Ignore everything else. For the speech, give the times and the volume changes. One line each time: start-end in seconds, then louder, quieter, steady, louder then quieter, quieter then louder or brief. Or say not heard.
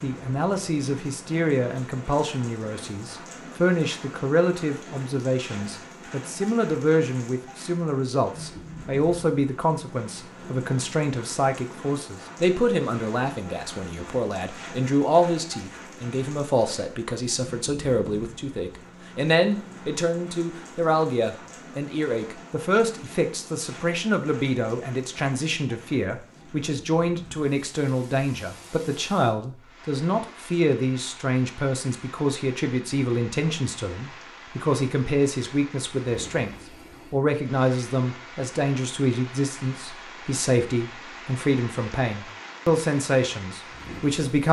0.0-44.4 steady.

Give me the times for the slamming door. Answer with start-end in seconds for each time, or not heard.
not heard.